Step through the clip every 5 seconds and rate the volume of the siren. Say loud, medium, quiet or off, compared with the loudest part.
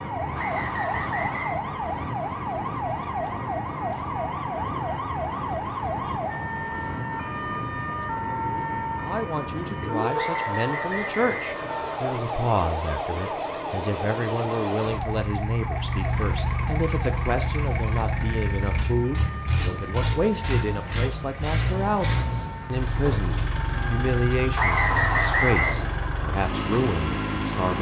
loud, loud, loud, medium, medium, medium.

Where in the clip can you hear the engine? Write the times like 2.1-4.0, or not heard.
0.0-27.7.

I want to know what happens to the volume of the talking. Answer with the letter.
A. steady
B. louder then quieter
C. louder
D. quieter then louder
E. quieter
A.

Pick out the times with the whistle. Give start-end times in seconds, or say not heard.
0.3-1.6, 10.2-12.2, 24.6-25.8.